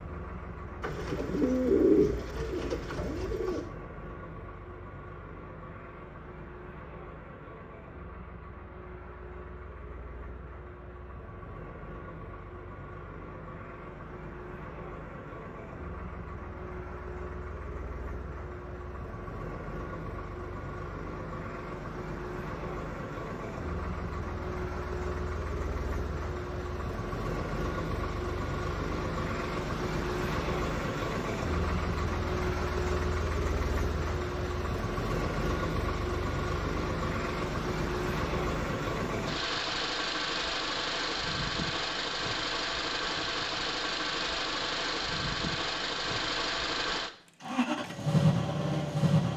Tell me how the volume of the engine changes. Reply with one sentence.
The loudness of the engine goes up.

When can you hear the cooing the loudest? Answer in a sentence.
The loudest moment of the cooing is at 2 seconds.